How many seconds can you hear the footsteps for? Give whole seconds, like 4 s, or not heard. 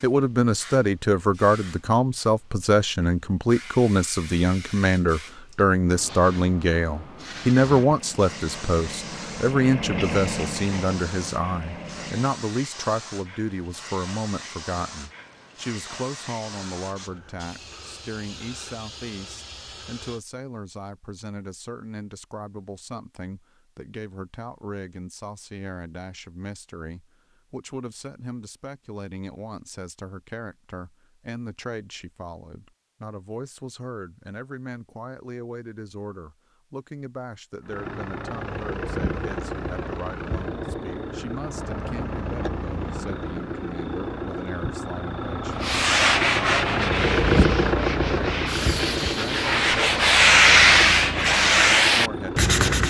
not heard.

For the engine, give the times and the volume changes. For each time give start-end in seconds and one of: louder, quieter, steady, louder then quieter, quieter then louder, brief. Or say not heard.
7.7-12.3 louder then quieter
37.6-52.8 louder then quieter.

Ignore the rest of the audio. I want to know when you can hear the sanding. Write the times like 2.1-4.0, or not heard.
45.6-52.8.